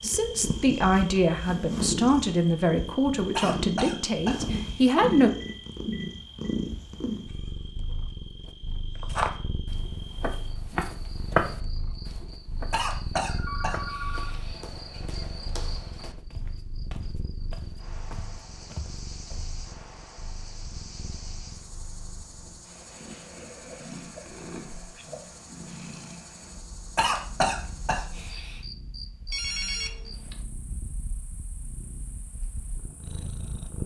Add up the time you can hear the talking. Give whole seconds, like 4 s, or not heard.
5 s.